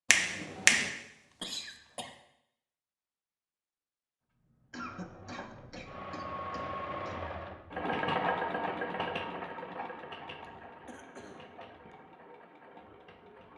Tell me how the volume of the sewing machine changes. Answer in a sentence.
The volume of the sewing machine goes up, then down.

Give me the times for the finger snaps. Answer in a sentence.
The finger snaps can be heard from 0.1 to 0.9 s.